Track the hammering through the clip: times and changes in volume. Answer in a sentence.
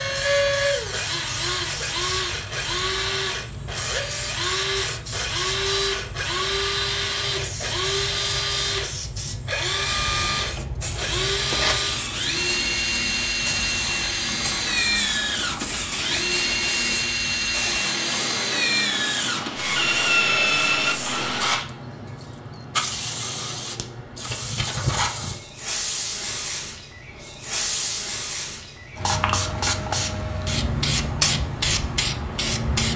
The hammering can't be heard in this clip.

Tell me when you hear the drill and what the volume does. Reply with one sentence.
The drill can be heard from 0.0 to 21.6 s, at a steady volume.